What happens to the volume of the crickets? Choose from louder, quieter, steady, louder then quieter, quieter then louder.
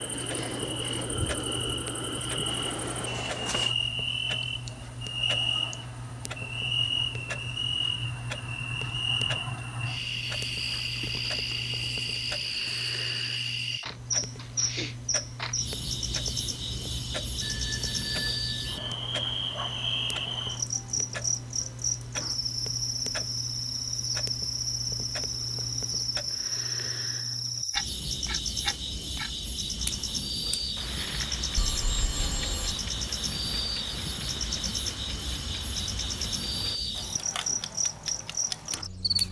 steady.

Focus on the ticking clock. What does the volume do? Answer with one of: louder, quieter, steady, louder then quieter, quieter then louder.
steady.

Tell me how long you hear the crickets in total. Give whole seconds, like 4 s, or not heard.
39 s.